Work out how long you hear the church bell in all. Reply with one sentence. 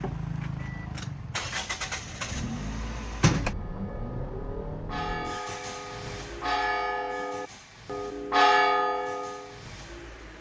You can hear the church bell for 6 seconds altogether.